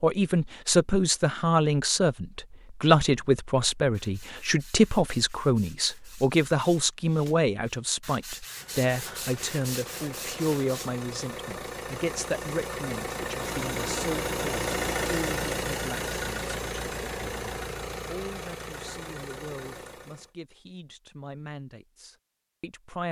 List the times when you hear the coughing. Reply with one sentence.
The coughing can't be heard in this clip.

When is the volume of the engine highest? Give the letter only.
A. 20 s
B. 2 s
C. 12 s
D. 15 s
D.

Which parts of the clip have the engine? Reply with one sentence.
You can hear the engine from 8.4 to 20.3 s.